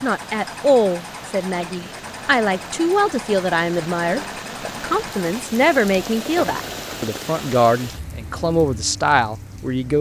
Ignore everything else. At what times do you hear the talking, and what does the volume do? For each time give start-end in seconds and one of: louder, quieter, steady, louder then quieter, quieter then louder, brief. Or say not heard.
0.0-9.9 steady.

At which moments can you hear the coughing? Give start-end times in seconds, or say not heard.
not heard.